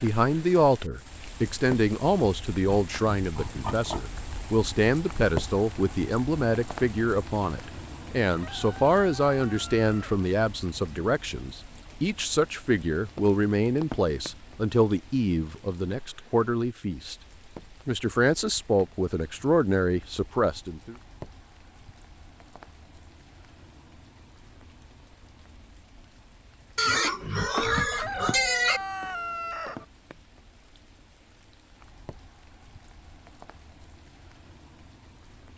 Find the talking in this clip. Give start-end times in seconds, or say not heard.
0.0-17.1, 17.9-20.9.